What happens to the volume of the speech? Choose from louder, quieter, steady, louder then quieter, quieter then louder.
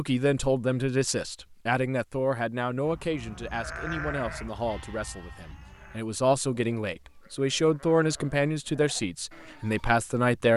quieter then louder.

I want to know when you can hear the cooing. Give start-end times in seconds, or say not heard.
not heard.